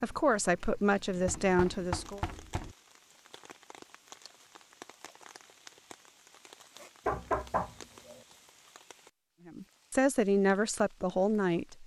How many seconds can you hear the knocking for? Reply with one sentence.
The knocking can be heard for 3 seconds in total.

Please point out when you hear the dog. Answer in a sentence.
The dog can't be heard in this clip.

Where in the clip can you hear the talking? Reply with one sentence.
The talking can be heard from 0.0 to 2.2 s and from 9.4 to 11.8 s.